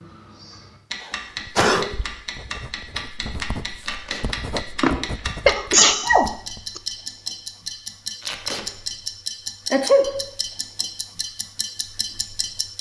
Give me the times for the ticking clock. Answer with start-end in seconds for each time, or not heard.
0.0-12.7.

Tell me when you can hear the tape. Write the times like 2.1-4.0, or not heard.
3.8-4.2, 8.2-8.7.